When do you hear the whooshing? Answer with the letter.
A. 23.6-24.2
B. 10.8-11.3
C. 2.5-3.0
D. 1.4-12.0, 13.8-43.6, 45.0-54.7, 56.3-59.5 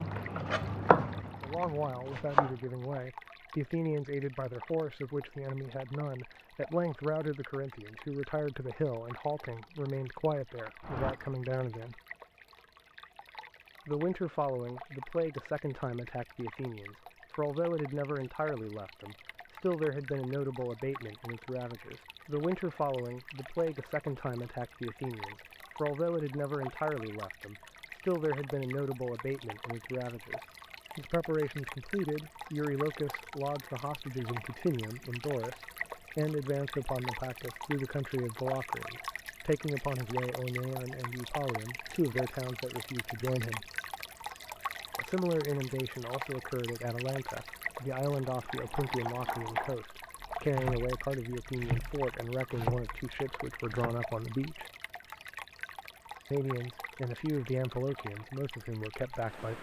B.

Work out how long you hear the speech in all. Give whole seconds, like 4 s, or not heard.
53 s.